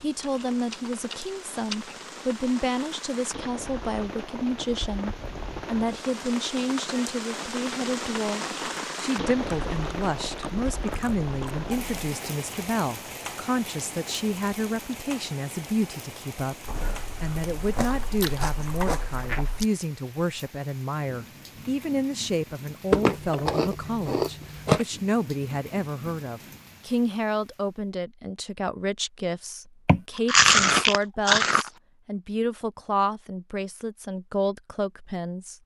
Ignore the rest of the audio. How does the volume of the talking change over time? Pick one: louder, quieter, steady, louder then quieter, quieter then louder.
steady.